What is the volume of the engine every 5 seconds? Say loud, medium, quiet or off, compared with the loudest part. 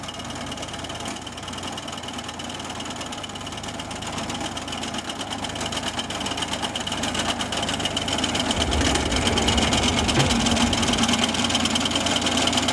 medium, loud, loud.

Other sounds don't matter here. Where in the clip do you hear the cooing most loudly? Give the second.
10 s.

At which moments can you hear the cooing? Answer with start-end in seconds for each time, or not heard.
8.5-11.1.